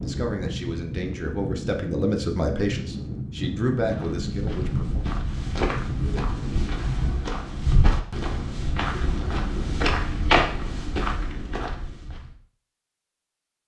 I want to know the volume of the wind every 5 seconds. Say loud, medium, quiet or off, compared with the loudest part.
loud, loud, off.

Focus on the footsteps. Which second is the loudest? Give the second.
10 s.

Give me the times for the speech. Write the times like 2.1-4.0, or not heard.
0.0-5.0.